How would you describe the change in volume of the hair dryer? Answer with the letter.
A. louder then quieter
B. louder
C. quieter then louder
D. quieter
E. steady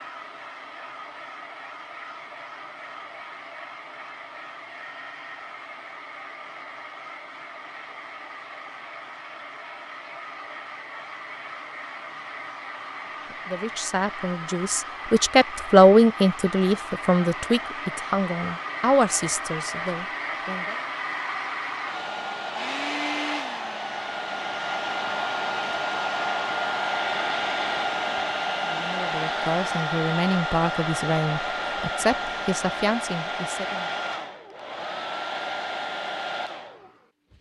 B.